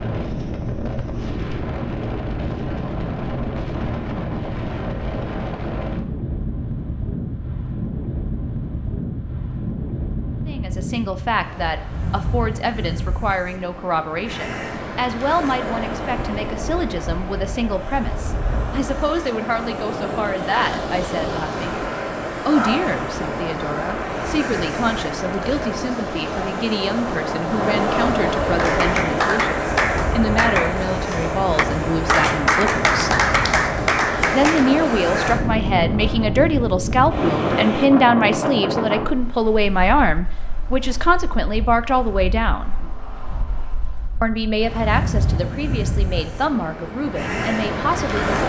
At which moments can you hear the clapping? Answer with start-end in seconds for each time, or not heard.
28.6-34.7.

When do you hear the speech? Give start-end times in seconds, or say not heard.
10.4-21.8, 22.4-33.1, 34.3-42.8, 44.2-48.3.